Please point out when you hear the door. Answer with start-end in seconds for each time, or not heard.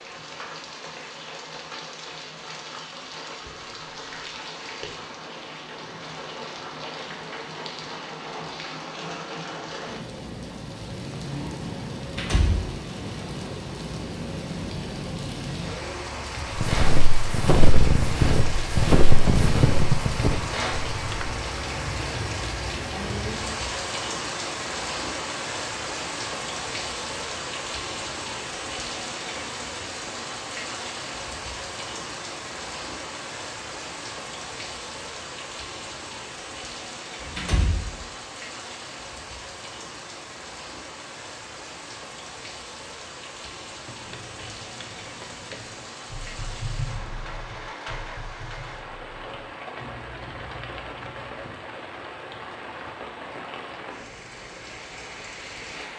12.0-12.7, 37.2-38.0.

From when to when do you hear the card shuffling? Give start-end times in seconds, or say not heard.
not heard.